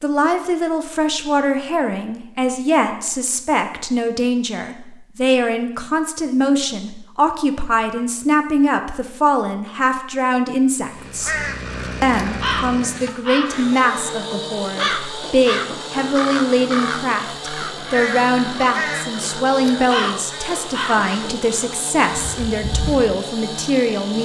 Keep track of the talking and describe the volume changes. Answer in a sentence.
The loudness of the talking stays about the same.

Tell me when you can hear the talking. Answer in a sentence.
The talking can be heard from 0.0 to 11.4 s and from 12.0 to 24.2 s.